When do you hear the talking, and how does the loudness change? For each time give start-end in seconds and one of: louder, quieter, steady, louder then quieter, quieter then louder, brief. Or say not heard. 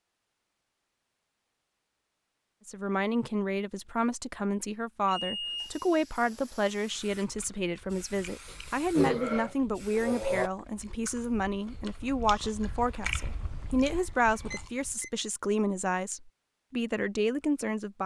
2.6-18.0 steady.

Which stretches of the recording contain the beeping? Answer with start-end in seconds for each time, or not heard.
5.0-5.9, 14.5-15.1.